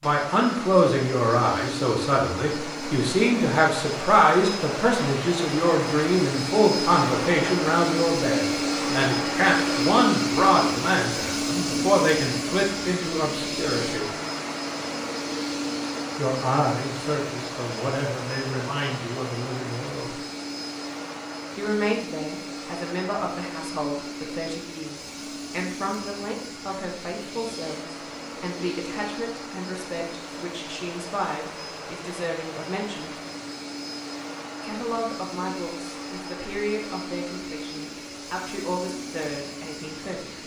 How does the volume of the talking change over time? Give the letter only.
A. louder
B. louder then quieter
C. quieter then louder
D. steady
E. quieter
E.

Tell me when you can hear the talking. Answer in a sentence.
You can hear the talking from 0.0 to 14.1 s, from 16.1 to 20.1 s, from 21.6 to 33.1 s and from 34.6 to 40.4 s.